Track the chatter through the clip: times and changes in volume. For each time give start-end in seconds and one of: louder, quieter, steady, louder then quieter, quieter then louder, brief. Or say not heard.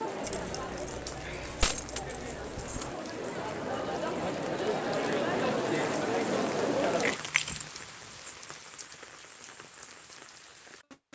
0.0-7.2 louder.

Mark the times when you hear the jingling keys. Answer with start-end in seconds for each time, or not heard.
0.2-3.0, 7.0-7.7.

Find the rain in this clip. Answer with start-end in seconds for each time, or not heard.
0.0-11.1.